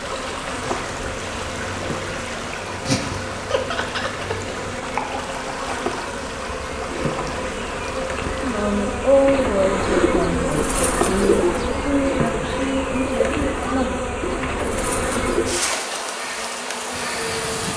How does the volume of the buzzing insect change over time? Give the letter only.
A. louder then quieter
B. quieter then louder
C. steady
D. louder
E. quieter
D.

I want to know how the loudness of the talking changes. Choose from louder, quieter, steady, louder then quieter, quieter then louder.
quieter.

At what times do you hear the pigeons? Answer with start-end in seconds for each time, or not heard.
9.3-15.7.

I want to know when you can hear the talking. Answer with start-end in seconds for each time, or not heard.
8.3-14.1.